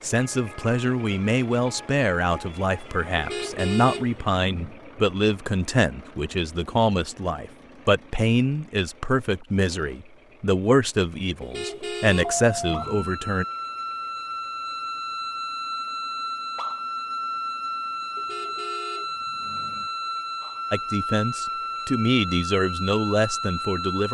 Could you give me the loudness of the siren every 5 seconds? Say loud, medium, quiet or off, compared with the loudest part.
quiet, off, loud, loud, loud.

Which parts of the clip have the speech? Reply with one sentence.
You can hear the speech from 0.0 to 13.4 s and from 20.7 to 24.0 s.